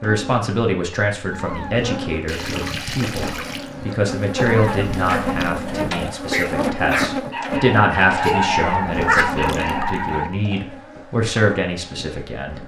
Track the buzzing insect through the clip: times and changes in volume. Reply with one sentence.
The buzzing insect can be heard from 0.0 to 12.6 s, getting louder then quieter.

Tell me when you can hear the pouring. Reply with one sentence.
The pouring can be heard from 2.2 to 4.0 s and from 9.3 to 10.0 s.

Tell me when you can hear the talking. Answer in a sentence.
The talking can be heard from 0.0 to 12.6 s.